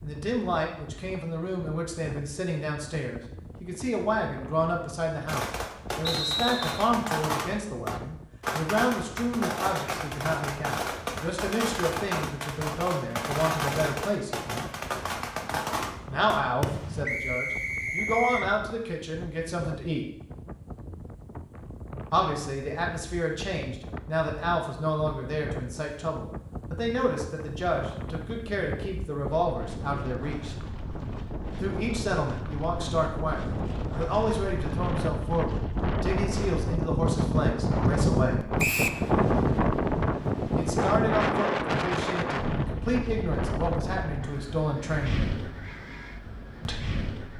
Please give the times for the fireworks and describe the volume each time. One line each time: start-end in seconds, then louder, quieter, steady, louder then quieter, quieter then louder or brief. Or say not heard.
5.2-17.1 steady.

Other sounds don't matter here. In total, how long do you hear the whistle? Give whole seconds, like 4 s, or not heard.
3 s.